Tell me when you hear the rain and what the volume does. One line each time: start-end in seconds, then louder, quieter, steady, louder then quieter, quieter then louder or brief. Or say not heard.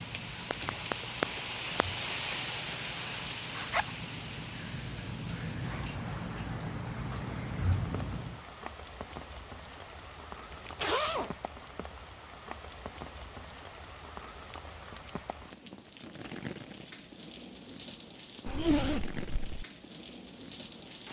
0.0-21.0 quieter.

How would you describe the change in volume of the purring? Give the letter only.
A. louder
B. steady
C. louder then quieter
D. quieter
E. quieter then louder
A.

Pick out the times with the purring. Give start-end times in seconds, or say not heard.
0.0-8.4.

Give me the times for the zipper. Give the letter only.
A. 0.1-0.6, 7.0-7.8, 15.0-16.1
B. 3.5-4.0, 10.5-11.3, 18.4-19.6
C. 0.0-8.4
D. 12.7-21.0
B.